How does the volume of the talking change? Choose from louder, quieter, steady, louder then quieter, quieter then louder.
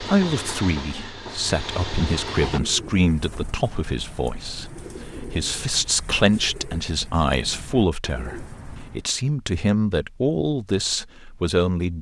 steady.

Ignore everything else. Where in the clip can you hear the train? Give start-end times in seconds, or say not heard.
0.0-2.6.